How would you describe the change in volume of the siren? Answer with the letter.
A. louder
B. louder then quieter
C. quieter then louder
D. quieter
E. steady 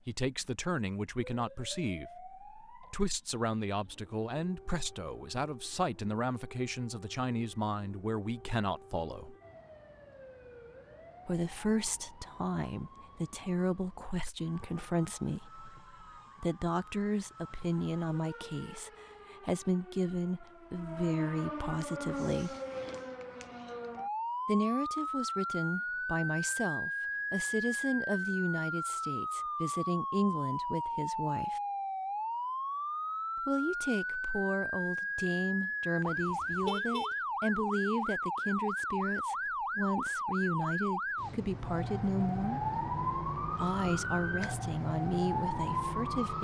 A.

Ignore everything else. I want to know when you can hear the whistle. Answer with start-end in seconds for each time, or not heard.
not heard.